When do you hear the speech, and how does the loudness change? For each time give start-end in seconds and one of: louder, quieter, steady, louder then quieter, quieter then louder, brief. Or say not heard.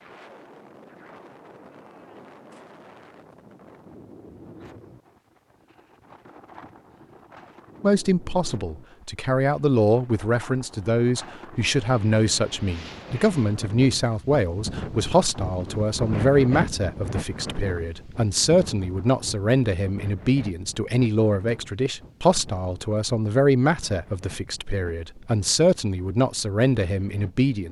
7.8-27.6 steady.